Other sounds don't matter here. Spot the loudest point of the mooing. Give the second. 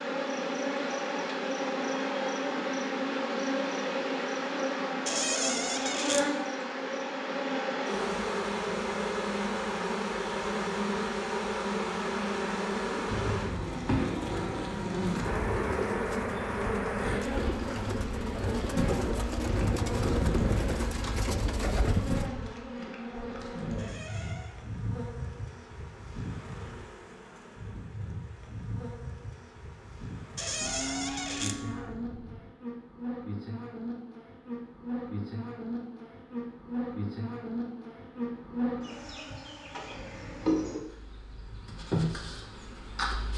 31 s.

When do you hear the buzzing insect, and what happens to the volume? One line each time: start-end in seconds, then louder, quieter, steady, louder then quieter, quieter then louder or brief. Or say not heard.
0.0-43.3 quieter then louder.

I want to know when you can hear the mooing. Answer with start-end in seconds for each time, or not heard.
30.6-32.5.